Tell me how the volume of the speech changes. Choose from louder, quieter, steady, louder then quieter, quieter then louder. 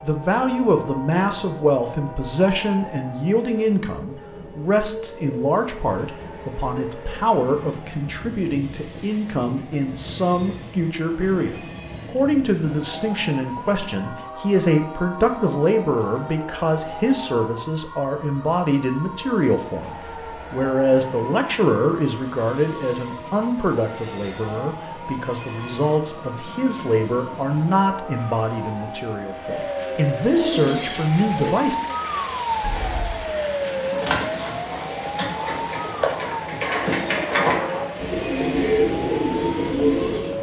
steady.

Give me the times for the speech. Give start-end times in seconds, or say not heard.
0.0-31.8.